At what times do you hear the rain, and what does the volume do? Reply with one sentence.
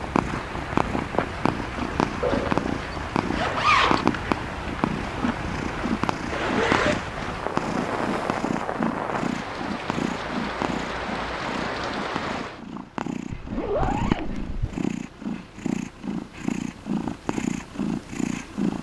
The rain can be heard from 0.0 to 12.6 s, at a steady volume.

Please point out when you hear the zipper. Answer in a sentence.
You can hear the zipper from 2.2 to 4.0 s, from 6.3 to 7.1 s and from 13.3 to 14.8 s.